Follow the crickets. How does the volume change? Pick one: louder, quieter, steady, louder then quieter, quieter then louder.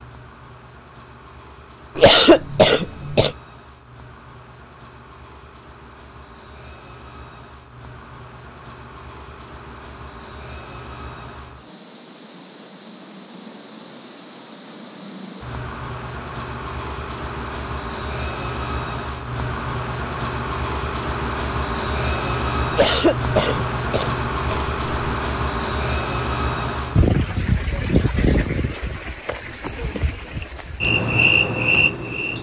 louder.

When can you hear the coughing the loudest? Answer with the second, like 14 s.
2 s.